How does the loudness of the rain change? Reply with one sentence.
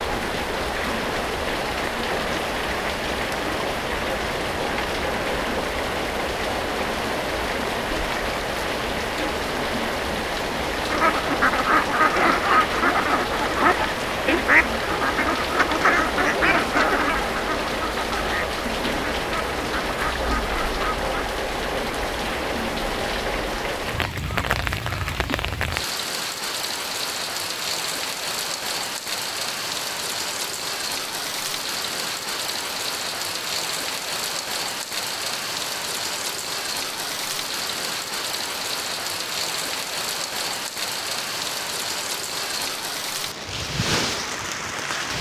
The loudness of the rain stays about the same.